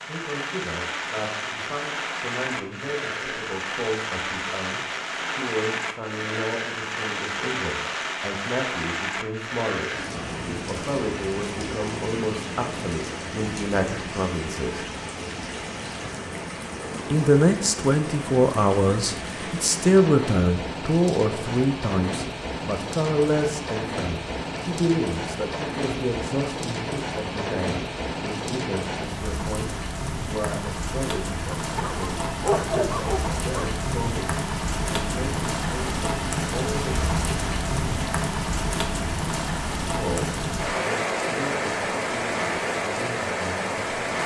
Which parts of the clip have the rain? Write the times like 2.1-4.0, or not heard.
0.0-44.2.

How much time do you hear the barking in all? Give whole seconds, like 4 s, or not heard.
2 s.